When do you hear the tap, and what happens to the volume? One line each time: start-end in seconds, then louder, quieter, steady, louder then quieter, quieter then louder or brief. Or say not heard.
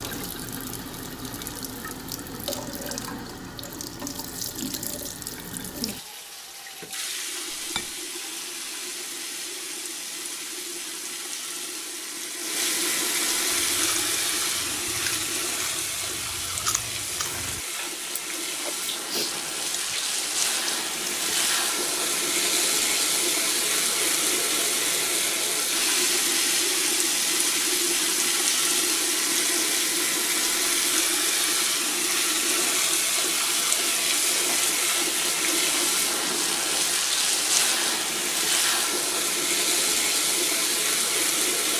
0.0-41.7 louder.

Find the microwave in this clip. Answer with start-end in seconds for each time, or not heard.
not heard.